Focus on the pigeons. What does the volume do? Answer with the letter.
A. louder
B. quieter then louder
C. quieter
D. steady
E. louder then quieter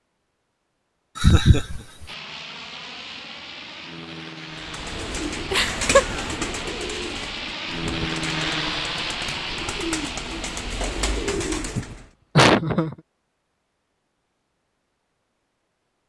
B.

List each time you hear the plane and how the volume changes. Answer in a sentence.
The plane can be heard from 2.0 to 11.4 s, getting louder then quieter.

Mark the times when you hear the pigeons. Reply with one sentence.
The pigeons can be heard from 4.5 to 12.1 s.